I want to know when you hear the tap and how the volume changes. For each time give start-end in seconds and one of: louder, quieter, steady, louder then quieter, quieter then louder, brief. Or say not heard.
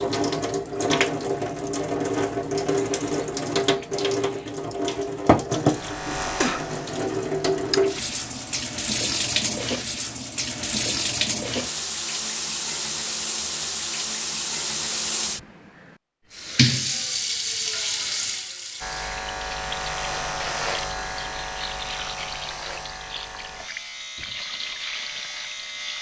0.0-25.9 quieter.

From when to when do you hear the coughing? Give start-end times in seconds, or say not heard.
not heard.